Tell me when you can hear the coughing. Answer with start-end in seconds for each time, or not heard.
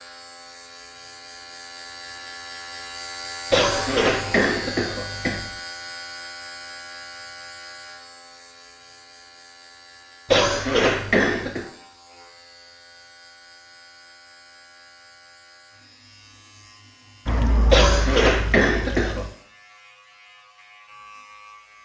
3.5-5.5, 10.2-11.7, 17.7-19.2.